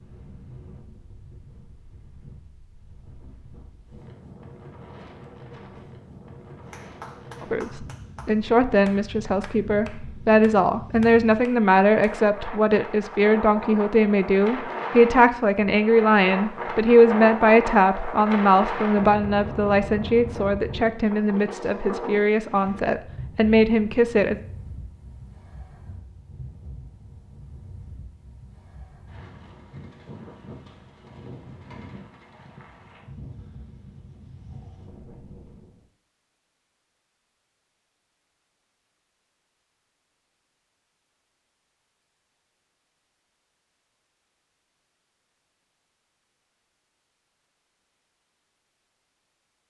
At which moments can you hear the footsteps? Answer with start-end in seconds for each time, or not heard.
not heard.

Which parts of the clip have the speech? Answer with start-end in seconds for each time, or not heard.
7.4-24.4.